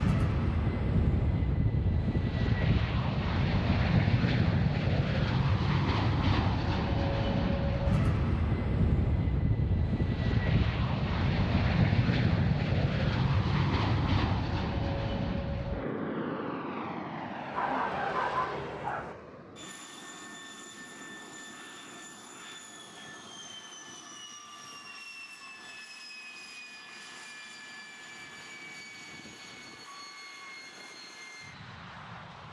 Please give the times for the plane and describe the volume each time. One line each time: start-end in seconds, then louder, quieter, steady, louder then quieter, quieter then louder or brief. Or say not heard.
0.0-32.4 quieter.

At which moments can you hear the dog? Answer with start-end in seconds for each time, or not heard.
17.5-19.1.